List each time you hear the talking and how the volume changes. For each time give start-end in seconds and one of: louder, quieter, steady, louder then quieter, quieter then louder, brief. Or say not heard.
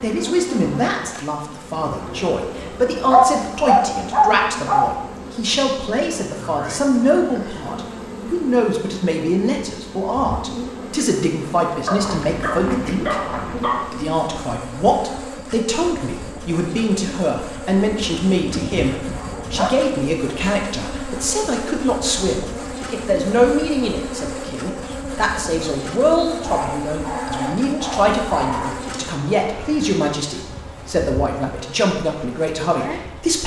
0.0-33.4 steady.